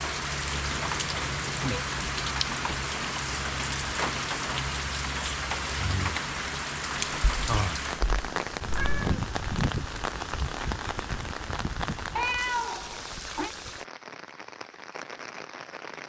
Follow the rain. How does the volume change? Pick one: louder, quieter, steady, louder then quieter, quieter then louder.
quieter.